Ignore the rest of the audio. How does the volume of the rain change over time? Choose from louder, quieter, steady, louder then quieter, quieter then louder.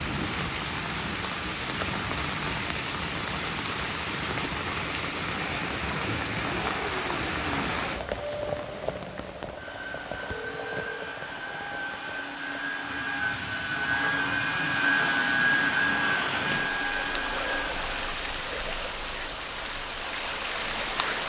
quieter then louder.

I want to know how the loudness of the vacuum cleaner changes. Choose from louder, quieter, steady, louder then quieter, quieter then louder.
louder.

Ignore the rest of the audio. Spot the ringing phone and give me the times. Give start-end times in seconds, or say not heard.
9.8-11.0.